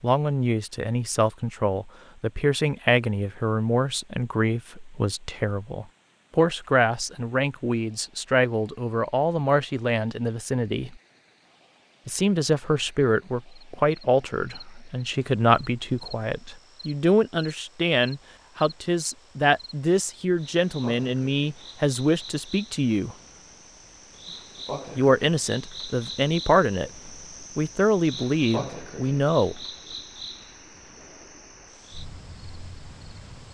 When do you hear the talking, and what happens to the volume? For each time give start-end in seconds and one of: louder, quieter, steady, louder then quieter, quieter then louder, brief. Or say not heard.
0.0-10.9 steady
12.1-23.1 steady
24.9-26.9 brief
27.6-29.6 brief.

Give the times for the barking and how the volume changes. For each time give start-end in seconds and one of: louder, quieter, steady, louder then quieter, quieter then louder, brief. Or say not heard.
not heard.